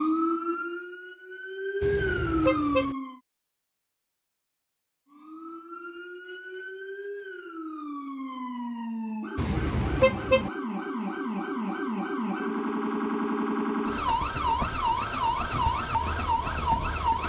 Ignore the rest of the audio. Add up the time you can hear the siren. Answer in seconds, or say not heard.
15 s.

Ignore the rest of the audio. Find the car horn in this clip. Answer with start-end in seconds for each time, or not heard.
1.8-3.0, 9.3-10.5.